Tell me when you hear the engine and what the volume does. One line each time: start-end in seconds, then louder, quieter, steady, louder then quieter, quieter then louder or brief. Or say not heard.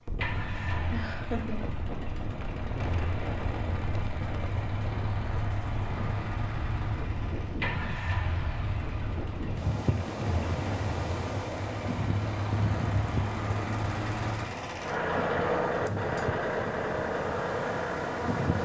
0.1-18.5 louder.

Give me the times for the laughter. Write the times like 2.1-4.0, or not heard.
0.9-1.7.